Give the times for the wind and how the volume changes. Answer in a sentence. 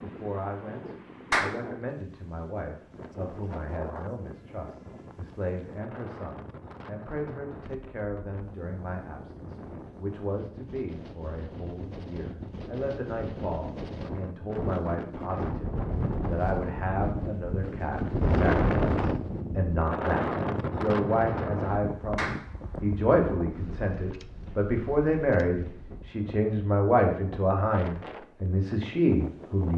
You can hear the wind from 0.0 to 29.7 s, getting louder then quieter.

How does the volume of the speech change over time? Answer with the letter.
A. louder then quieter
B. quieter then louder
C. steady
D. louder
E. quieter
D.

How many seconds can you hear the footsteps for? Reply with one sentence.
The footsteps can't be heard in this clip.